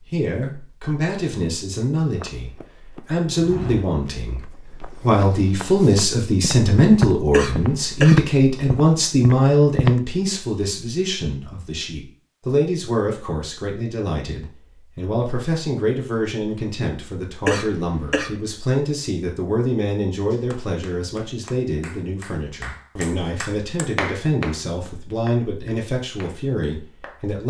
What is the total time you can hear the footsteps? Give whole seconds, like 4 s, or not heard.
8 s.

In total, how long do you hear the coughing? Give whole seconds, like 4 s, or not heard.
2 s.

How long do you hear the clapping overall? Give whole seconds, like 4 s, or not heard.
7 s.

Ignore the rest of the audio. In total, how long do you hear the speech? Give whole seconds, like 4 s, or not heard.
27 s.